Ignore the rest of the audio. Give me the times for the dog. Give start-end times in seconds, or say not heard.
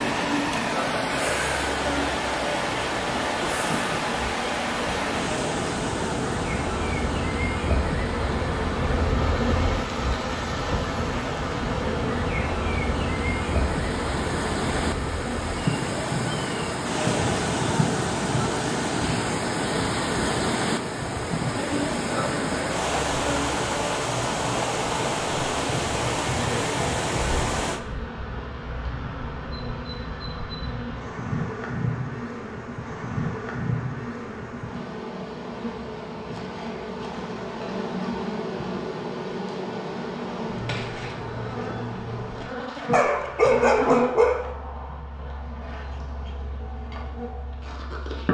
42.9-44.5.